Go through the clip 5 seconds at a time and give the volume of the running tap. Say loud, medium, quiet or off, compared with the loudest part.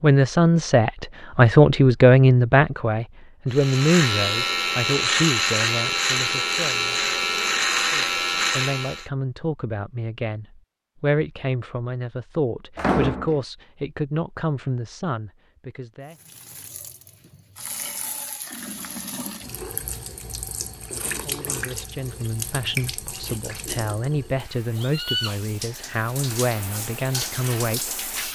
off, off, off, medium, loud, loud.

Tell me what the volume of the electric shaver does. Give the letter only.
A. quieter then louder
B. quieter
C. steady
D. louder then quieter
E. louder
C.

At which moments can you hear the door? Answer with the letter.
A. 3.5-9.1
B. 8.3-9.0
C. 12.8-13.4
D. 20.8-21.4
C.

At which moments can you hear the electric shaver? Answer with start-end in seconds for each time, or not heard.
3.5-9.1.